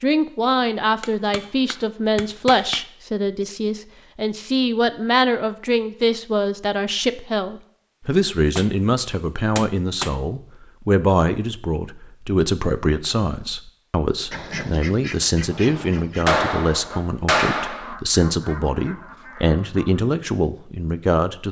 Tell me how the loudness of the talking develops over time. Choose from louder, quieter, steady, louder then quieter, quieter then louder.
steady.